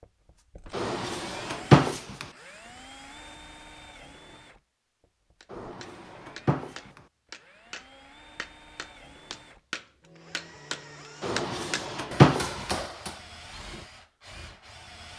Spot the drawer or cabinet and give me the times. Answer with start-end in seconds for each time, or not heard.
0.7-2.2, 5.5-7.0, 11.2-12.7.